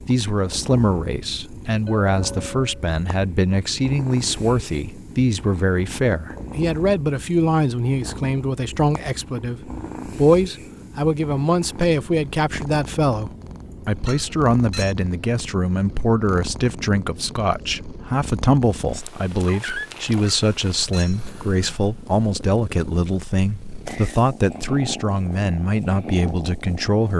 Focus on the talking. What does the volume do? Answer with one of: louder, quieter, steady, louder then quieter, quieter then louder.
steady.